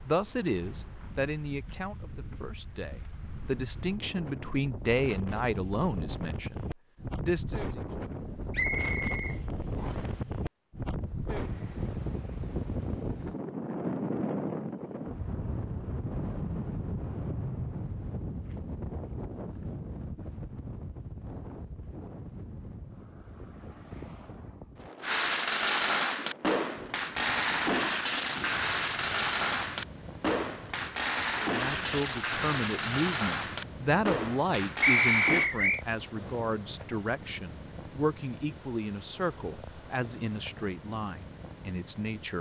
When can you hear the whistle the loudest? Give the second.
35 s.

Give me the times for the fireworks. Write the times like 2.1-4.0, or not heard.
25.0-35.5.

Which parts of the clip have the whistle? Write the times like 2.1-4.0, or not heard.
8.5-10.1, 34.8-35.8.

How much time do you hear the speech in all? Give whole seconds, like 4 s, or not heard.
19 s.